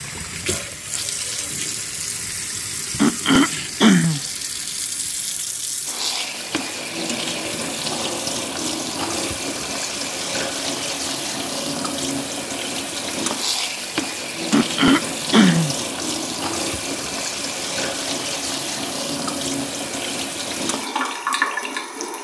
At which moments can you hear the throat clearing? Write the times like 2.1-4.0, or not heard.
3.0-4.2, 14.5-15.8.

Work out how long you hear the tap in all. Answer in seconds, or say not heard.
22 s.